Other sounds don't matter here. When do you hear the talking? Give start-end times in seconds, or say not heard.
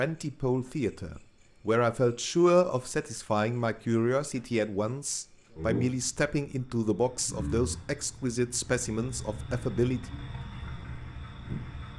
0.0-10.0.